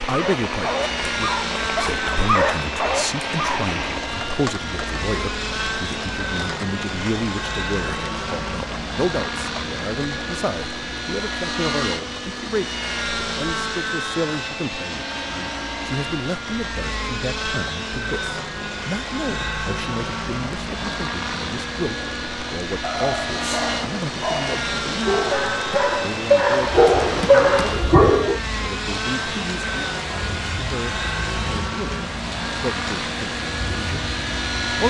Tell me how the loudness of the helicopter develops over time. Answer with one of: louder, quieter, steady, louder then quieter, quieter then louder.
steady.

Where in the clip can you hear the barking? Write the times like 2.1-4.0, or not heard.
0.0-3.7, 22.8-28.4.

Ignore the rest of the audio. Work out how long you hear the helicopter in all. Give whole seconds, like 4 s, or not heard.
35 s.